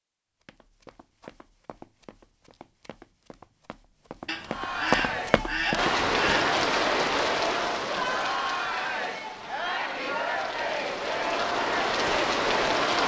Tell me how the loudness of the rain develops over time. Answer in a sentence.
The volume of the rain goes down, then up.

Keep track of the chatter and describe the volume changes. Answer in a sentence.
The volume of the chatter stays about the same.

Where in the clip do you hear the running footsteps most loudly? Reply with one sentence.
The loudest moment of the running footsteps is at 5 seconds.